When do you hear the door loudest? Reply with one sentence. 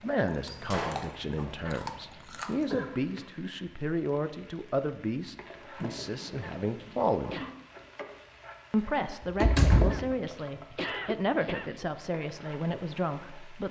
The loudest moment of the door is at 10 seconds.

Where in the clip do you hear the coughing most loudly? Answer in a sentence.
The loudest moment of the coughing is at 11 seconds.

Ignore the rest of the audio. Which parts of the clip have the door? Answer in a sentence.
You can hear the door from 0.5 to 1.4 s, from 5.8 to 7.0 s and from 9.2 to 10.0 s.